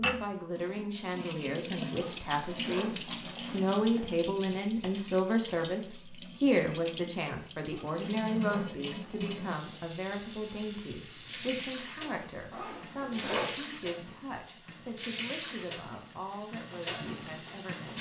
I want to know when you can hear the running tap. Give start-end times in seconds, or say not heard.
0.0-17.9.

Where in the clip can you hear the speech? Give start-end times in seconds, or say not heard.
0.0-17.9.